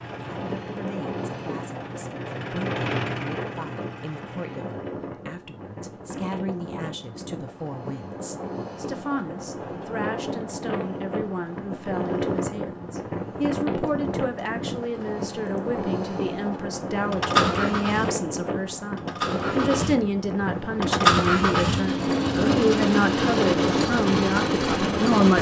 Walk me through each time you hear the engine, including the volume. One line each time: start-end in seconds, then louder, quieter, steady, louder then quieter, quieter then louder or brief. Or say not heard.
0.0-4.8 louder then quieter
17.1-25.3 louder.